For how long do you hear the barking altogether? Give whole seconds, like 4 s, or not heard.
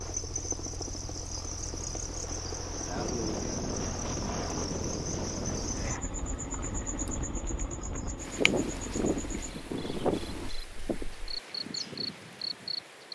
not heard.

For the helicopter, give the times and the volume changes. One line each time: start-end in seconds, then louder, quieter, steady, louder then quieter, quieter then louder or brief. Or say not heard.
0.0-10.5 steady.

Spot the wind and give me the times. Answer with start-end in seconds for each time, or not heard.
3.0-13.0.